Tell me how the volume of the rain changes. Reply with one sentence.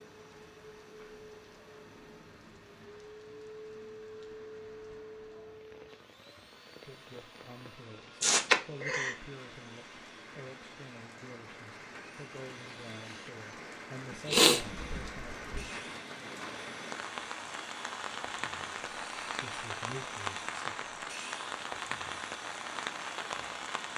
The volume of the rain goes up.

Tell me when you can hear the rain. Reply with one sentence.
You can hear the rain from 0.0 to 23.9 s.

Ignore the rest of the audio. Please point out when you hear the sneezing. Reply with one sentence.
The sneezing can be heard from 8.2 to 9.2 s and from 14.1 to 15.6 s.